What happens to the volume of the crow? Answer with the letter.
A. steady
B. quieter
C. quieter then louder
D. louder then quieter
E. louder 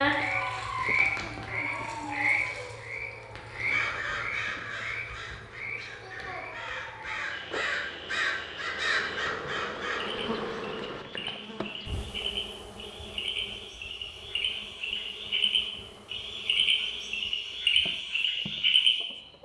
C.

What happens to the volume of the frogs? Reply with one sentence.
The volume of the frogs goes down, then up.